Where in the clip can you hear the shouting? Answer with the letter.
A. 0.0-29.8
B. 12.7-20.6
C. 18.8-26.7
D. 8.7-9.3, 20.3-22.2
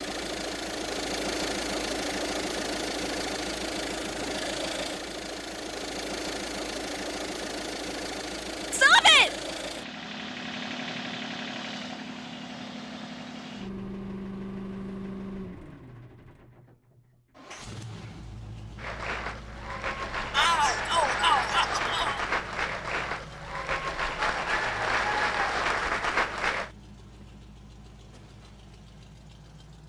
D.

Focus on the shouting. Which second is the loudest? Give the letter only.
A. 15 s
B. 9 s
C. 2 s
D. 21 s
B.